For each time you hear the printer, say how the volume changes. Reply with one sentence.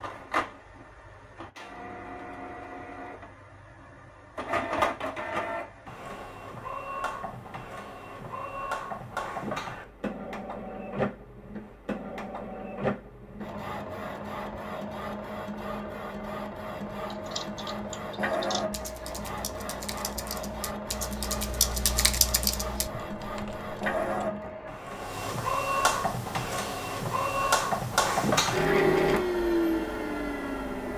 The printer can be heard from 0.0 to 30.9 s, getting louder.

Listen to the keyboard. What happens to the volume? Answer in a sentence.
The volume of the keyboard goes up, then down.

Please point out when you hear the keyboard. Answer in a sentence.
You can hear the keyboard from 17.1 to 24.3 s.